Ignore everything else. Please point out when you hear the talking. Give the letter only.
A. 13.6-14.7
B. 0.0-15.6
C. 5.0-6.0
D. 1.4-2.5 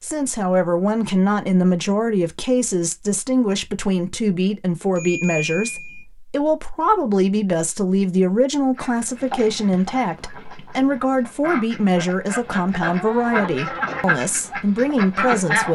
B.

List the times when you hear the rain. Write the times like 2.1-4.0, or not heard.
not heard.